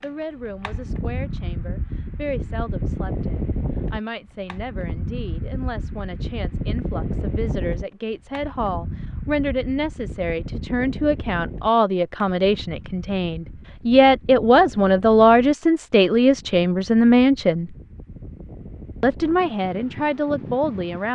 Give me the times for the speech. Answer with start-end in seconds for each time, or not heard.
0.0-17.8, 19.0-21.1.